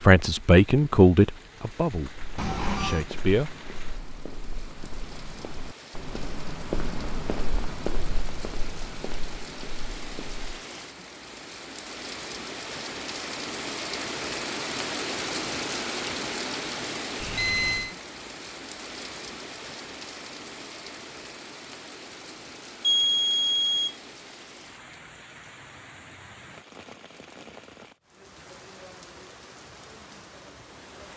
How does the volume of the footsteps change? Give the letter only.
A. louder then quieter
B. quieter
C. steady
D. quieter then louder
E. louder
A.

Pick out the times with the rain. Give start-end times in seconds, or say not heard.
0.0-31.1.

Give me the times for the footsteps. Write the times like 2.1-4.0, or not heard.
2.1-10.6.